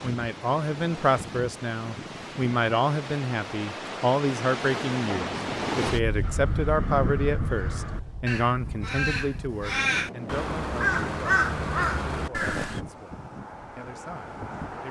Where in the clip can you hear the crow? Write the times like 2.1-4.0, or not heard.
6.2-12.8.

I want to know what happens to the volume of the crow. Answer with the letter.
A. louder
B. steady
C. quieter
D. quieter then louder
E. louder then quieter
A.